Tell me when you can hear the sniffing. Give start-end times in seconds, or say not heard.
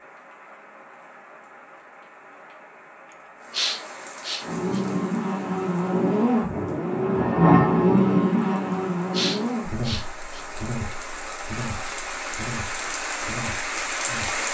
3.5-4.8, 9.1-10.4.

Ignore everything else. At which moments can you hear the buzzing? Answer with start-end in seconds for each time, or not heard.
4.4-14.4.